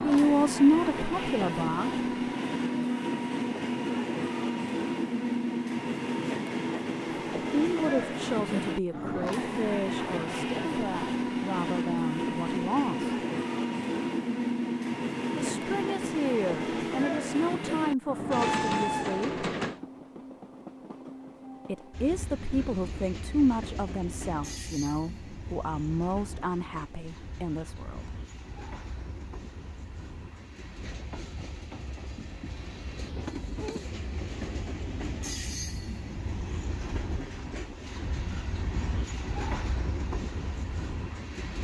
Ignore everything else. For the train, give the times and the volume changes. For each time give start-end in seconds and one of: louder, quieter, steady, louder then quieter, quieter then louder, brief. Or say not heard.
0.0-41.5 quieter then louder.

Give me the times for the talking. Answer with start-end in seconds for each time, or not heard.
0.0-2.0, 7.6-13.2, 15.3-19.4, 21.6-28.1.